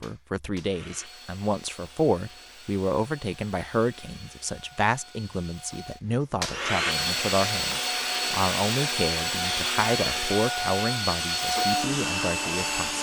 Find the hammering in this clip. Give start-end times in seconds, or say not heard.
not heard.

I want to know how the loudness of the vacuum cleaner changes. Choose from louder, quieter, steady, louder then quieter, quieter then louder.
louder.